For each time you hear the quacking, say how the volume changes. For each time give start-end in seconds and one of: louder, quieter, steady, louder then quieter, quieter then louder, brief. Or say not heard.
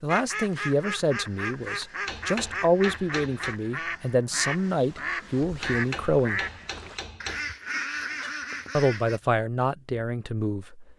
0.1-9.2 steady.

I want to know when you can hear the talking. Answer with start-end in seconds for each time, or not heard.
0.0-6.4, 8.8-10.9.